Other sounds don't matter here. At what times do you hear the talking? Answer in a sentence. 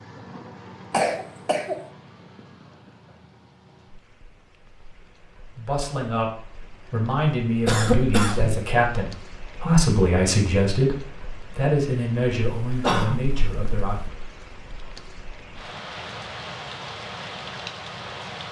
The talking can be heard from 5.5 to 6.3 s and from 6.9 to 14.0 s.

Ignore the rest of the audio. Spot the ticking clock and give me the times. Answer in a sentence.
The ticking clock can't be heard in this clip.